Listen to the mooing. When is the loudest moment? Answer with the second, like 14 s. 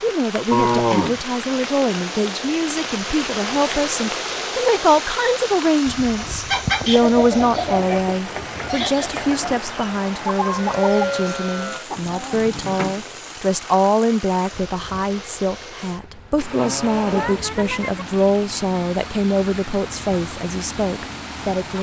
1 s.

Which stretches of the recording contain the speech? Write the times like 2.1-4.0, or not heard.
0.0-21.7.